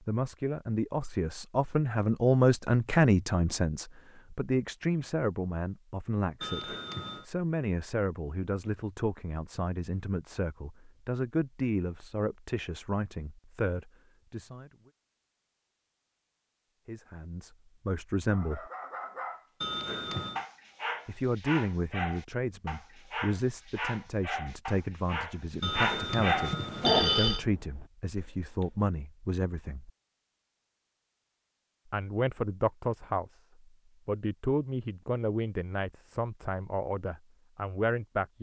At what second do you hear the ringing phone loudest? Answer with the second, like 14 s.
27 s.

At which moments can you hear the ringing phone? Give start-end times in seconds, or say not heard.
6.4-7.2, 19.6-20.4, 25.6-27.4.